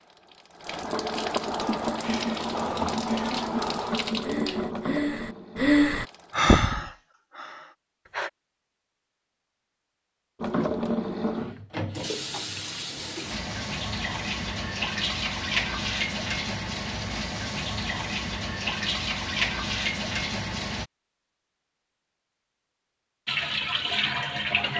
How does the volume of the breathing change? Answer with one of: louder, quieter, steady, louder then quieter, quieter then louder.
louder then quieter.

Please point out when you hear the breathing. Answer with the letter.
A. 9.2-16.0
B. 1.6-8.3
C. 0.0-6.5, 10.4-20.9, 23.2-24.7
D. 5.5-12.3
B.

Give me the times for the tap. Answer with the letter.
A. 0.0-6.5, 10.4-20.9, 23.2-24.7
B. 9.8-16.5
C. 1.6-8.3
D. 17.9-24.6
A.